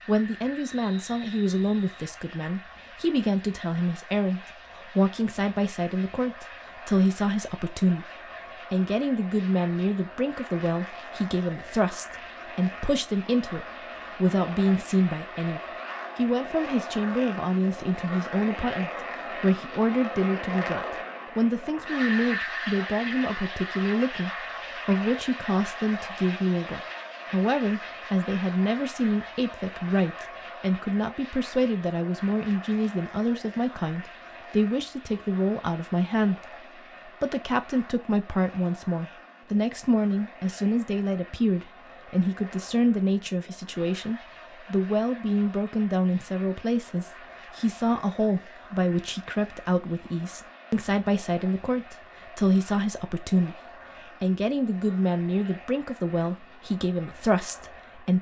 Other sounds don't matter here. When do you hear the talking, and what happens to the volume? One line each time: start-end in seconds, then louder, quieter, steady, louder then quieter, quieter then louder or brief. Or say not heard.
0.1-58.1 steady.